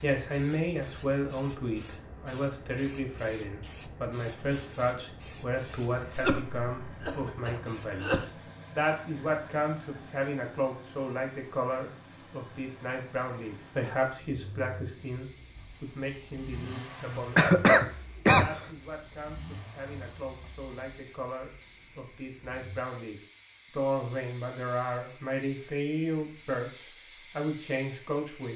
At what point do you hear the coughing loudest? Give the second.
18 s.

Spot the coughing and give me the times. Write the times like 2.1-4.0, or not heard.
5.5-8.2, 17.4-18.6.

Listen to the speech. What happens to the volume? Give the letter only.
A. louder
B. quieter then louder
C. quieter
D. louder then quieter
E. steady
B.